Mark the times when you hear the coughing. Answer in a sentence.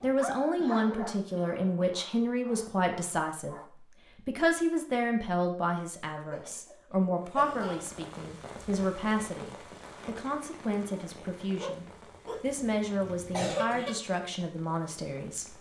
The coughing can be heard from 0.6 to 1.9 s, from 6.3 to 8.0 s and from 12.2 to 13.9 s.